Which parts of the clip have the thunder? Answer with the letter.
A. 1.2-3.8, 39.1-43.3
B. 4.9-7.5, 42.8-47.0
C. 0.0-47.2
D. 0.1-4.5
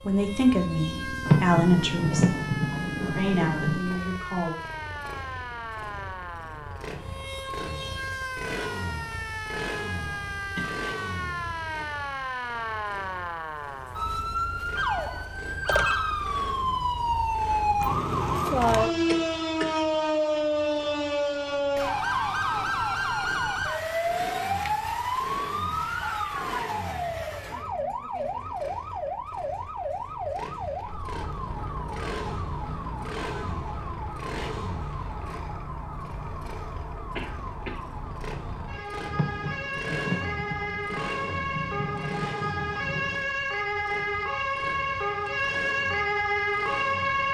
A.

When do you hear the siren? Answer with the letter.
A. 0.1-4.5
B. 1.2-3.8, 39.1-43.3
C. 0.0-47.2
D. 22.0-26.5
C.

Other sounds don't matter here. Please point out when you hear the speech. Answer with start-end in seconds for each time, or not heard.
0.1-4.5.